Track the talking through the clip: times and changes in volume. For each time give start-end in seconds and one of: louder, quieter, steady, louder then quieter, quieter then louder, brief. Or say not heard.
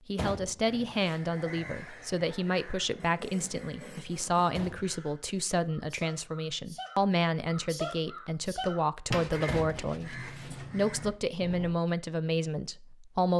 0.1-13.3 steady.